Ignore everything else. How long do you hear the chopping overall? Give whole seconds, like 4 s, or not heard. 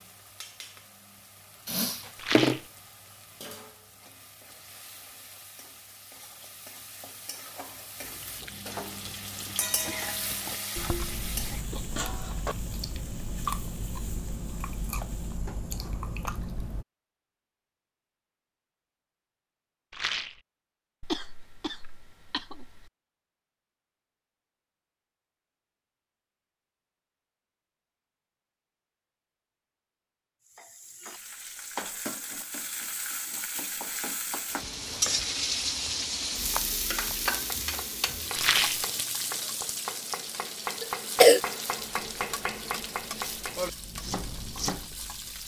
10 s.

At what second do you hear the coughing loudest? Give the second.
41 s.